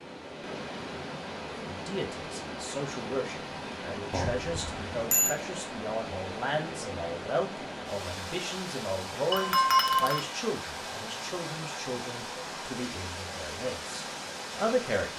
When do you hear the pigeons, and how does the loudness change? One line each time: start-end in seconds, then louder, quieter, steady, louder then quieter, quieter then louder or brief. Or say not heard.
not heard.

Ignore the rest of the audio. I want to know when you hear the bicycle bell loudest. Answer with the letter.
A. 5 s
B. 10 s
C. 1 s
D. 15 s
B.